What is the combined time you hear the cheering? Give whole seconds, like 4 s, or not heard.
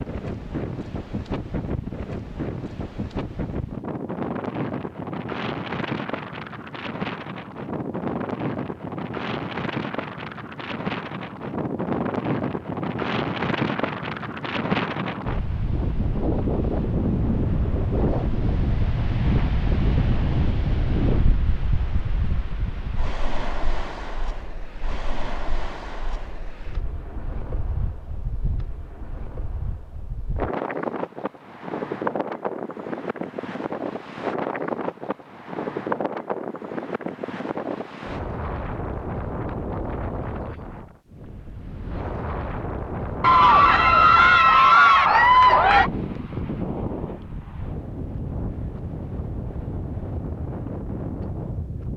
3 s.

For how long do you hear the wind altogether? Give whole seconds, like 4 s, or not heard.
52 s.